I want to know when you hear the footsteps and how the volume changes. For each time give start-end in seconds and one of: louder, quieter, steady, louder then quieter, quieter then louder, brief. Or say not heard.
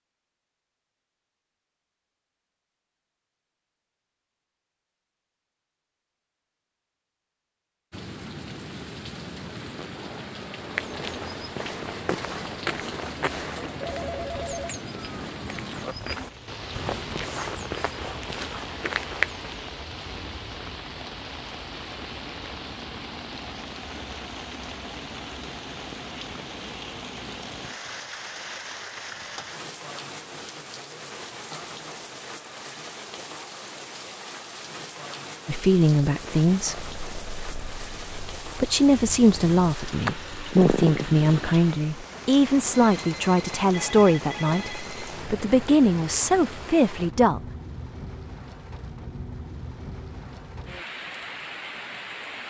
10.7-19.6 quieter then louder.